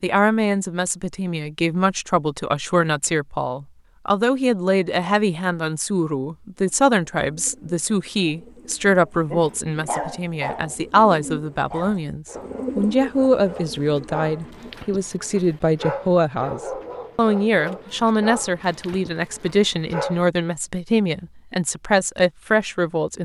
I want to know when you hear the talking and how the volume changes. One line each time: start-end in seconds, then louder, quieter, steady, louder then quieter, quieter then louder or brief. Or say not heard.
0.0-23.2 steady.